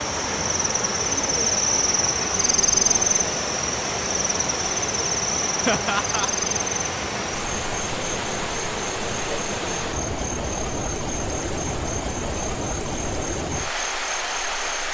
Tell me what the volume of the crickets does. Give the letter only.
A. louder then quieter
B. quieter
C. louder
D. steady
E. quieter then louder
B.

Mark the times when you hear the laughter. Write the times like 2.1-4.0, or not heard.
5.7-6.3.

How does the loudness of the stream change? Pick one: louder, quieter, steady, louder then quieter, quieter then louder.
steady.